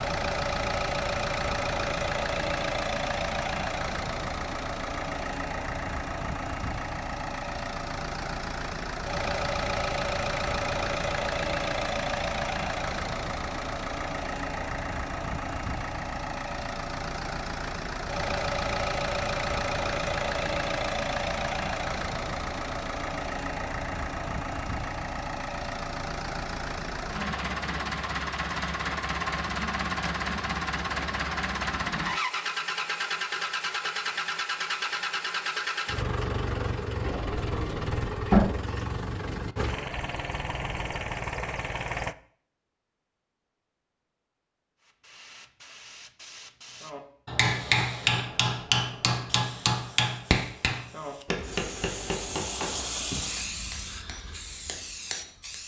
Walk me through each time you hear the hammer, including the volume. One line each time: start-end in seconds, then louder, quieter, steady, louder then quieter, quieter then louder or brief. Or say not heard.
46.9-55.6 quieter.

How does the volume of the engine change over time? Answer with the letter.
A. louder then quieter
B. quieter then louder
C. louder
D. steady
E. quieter
D.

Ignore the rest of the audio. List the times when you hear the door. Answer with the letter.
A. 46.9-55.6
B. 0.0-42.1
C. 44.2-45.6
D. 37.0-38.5
D.